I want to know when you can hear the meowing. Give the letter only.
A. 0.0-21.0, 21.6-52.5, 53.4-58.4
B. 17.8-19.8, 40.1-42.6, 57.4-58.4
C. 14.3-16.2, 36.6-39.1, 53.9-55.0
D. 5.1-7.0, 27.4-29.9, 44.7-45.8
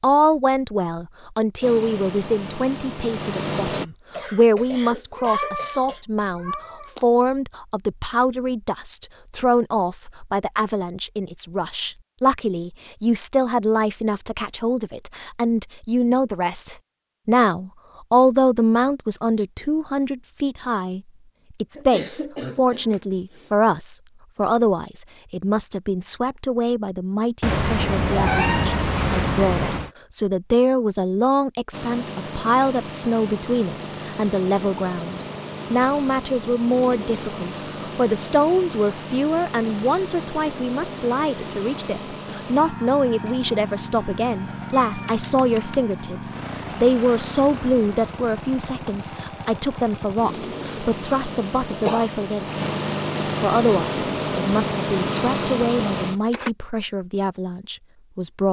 D.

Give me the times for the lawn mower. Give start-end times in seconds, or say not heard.
1.6-3.9, 31.7-56.5.